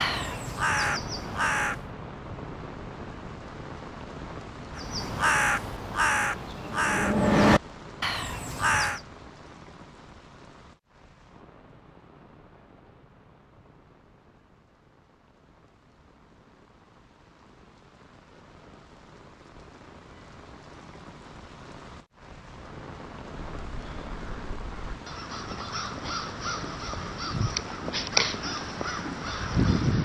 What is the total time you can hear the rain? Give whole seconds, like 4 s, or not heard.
30 s.